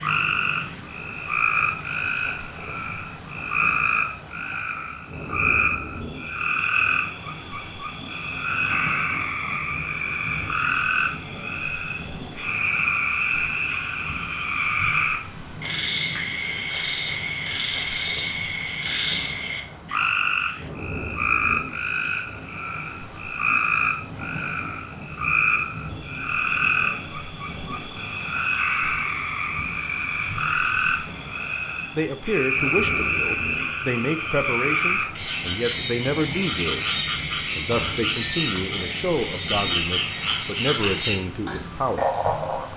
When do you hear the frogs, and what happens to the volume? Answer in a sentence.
The frogs can be heard from 0.0 to 42.7 s, at a steady volume.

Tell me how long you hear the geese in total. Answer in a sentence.
The geese can't be heard in this clip.